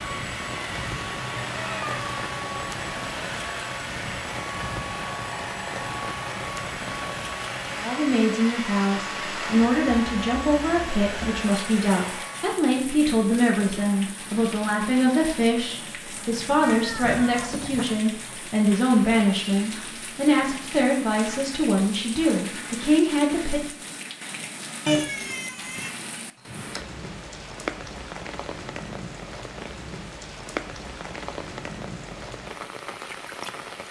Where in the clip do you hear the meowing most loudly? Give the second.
25 s.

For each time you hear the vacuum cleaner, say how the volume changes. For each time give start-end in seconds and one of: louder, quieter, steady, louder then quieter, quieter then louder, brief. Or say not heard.
0.0-12.6 steady.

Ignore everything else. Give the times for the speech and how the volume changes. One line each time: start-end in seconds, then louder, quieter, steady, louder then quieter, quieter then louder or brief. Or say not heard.
7.8-23.6 steady.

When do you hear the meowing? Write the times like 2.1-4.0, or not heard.
0.9-3.0, 16.6-17.9, 24.9-25.9.